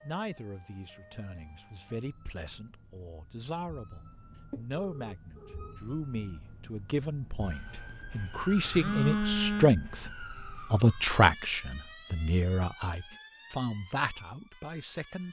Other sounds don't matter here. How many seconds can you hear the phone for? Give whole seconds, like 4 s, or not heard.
2 s.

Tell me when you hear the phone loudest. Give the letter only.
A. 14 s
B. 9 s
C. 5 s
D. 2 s
B.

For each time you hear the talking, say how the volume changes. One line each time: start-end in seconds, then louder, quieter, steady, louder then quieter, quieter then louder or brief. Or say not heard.
0.0-15.2 louder then quieter.